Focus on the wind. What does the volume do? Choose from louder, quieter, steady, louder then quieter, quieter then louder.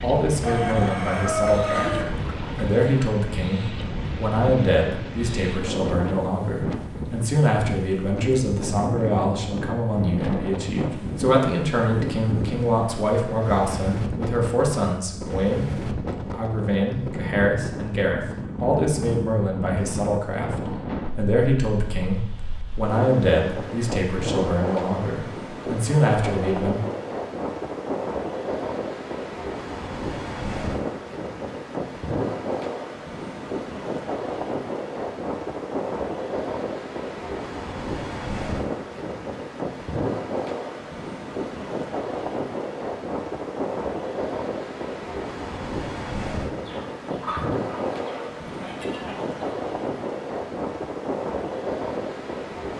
steady.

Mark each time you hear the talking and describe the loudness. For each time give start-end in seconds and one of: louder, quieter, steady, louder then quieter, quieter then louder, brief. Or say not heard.
0.0-26.8 steady.